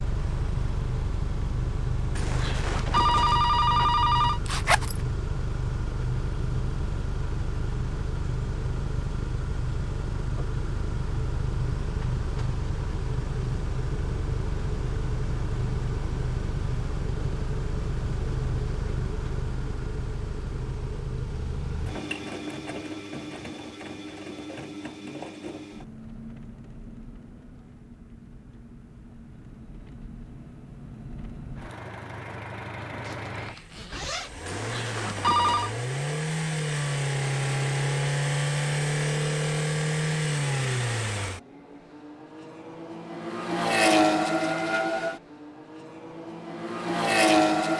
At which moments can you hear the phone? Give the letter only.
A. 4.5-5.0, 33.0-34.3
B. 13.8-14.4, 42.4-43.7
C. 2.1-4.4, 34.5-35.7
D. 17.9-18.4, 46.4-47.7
C.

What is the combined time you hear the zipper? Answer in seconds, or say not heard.
2 s.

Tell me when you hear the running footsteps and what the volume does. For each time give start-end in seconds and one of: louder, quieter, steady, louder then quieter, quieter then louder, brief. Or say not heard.
not heard.